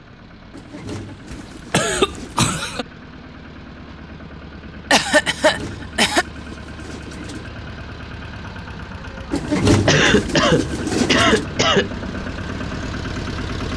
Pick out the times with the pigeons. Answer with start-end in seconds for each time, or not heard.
0.5-2.5, 5.3-7.5, 9.3-11.4.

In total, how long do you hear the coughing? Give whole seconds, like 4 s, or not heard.
5 s.